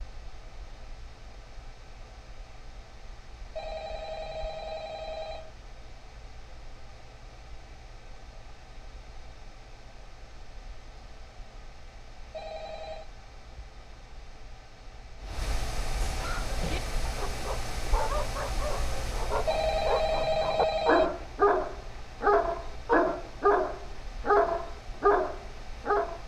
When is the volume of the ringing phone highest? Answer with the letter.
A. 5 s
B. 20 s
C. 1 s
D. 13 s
B.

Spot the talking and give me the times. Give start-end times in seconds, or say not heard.
not heard.